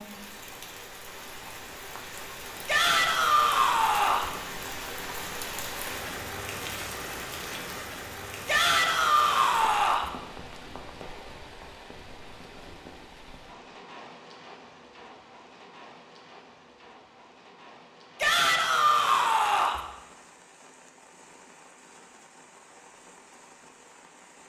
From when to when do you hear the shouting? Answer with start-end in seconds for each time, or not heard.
2.6-4.3, 8.4-10.1, 18.2-19.8.